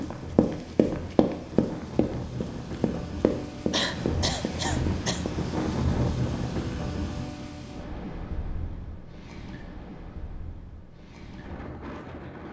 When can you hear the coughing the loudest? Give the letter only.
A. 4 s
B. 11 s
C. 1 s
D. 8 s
A.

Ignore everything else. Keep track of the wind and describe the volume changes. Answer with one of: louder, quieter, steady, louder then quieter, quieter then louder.
louder then quieter.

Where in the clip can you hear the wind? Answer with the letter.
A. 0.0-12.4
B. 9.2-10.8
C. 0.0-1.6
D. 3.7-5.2
A.